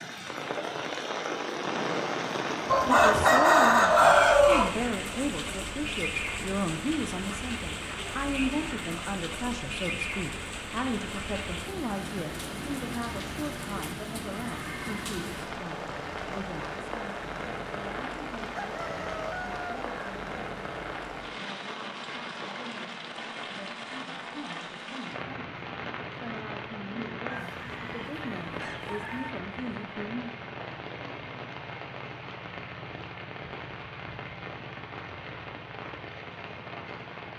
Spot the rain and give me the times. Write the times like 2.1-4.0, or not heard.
0.0-37.3.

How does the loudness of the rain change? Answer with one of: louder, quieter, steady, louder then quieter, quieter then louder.
quieter.